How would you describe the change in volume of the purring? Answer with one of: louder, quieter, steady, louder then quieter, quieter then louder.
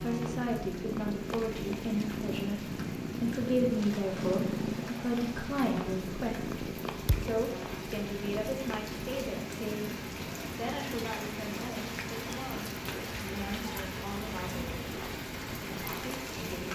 quieter.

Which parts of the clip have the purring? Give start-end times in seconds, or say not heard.
0.0-16.6.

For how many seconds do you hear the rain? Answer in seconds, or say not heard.
17 s.